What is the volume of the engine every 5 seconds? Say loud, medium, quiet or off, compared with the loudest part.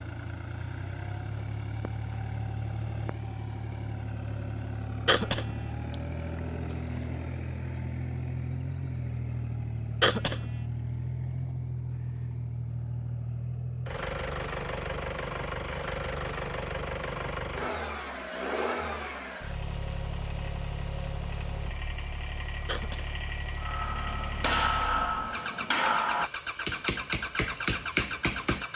loud, loud, loud, loud, medium, loud.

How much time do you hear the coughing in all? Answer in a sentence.
The coughing can be heard for 2 seconds in total.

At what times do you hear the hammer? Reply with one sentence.
The hammer can be heard from 23.6 to 28.7 s.